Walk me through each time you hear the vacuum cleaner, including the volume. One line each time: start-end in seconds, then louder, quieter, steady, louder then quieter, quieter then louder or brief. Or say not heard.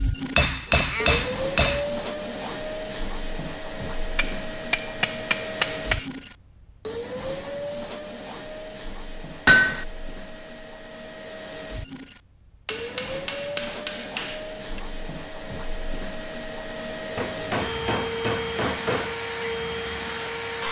0.0-20.6 quieter then louder.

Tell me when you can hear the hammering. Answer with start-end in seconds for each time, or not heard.
0.3-1.9, 4.2-6.0, 9.4-9.8, 12.7-14.6, 17.1-19.2.